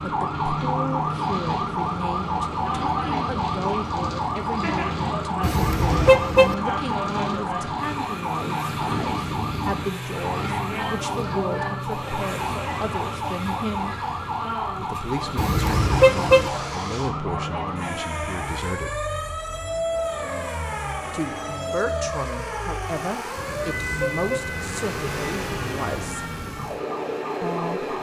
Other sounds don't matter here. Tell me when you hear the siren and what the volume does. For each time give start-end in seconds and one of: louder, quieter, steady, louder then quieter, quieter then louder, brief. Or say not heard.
0.0-27.9 quieter.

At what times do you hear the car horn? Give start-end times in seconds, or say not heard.
5.4-6.5, 15.3-16.5, 23.4-24.5.